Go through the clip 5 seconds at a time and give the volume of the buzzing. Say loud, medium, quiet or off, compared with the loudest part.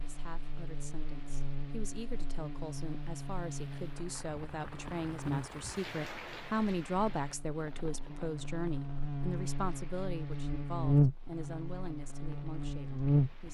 quiet, medium, loud.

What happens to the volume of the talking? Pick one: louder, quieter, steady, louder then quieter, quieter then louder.
louder then quieter.